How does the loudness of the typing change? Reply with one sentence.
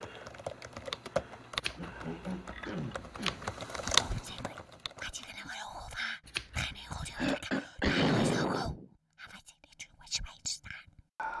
The loudness of the typing goes down, then up.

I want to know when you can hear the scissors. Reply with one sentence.
You can hear the scissors from 1.6 to 3.5 s and from 6.2 to 7.3 s.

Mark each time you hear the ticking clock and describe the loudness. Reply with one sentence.
The ticking clock can't be heard in this clip.